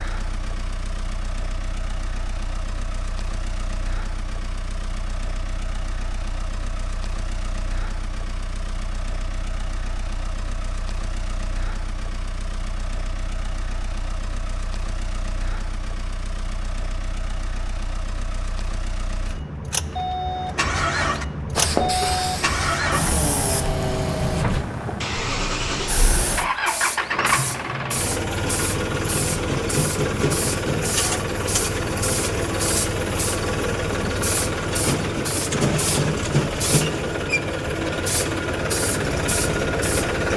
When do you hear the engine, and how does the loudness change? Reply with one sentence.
The engine can be heard from 0.0 to 40.3 s, getting louder.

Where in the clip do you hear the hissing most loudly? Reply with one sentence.
The volume of the hissing peaks at 22 seconds.